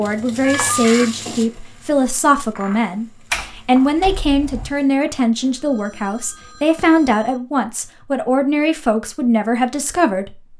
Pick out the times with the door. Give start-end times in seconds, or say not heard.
3.3-4.7.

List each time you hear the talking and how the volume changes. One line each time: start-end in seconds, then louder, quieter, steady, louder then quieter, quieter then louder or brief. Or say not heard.
0.0-10.5 steady.